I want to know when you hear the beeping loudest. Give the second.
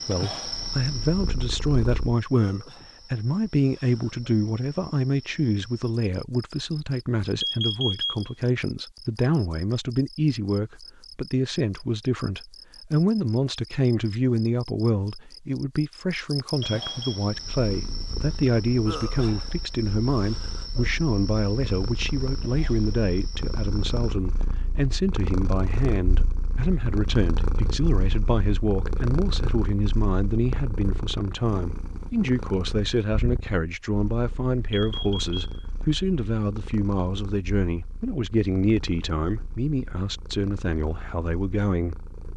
8 s.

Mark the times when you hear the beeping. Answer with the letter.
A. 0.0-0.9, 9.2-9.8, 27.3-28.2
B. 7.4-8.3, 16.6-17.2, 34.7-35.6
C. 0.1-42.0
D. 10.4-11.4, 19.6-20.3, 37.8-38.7
B.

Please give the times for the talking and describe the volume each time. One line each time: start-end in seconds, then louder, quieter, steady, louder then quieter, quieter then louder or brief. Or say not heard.
0.1-42.0 steady.